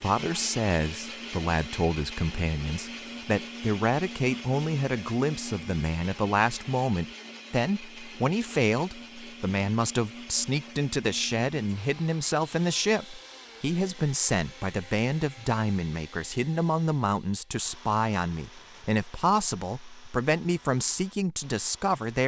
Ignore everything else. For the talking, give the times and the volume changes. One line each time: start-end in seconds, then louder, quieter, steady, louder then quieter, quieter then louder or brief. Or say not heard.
0.0-22.2 steady.